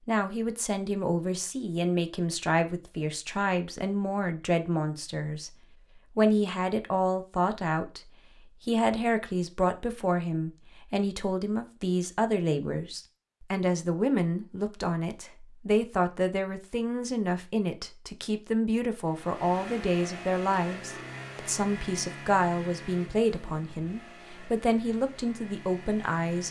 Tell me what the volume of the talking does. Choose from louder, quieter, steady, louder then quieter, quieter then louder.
steady.